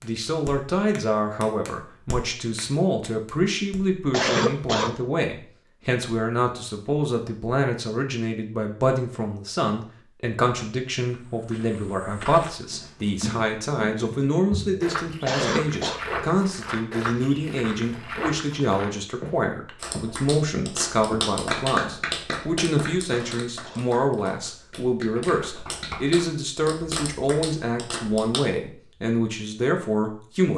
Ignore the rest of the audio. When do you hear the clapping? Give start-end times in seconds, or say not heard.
0.0-3.8, 19.8-28.4.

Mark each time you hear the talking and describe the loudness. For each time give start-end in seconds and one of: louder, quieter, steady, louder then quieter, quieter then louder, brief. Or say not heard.
0.0-30.5 steady.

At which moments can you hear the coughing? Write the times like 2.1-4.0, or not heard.
4.1-5.0, 15.2-16.0, 23.1-23.9.